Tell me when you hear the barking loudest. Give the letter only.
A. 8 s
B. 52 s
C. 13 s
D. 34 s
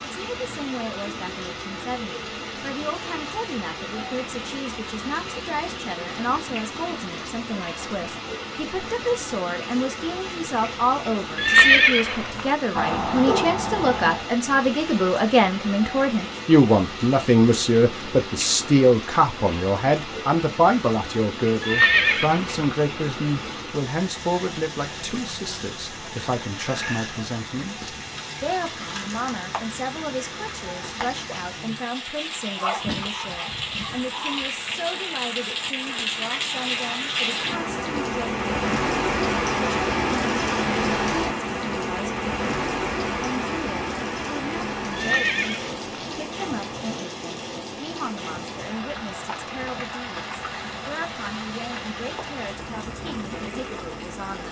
C.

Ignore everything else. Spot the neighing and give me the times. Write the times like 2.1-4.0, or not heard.
11.3-12.5, 21.6-22.6, 44.9-45.8.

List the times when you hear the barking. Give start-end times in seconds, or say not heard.
12.8-14.2, 32.5-34.5.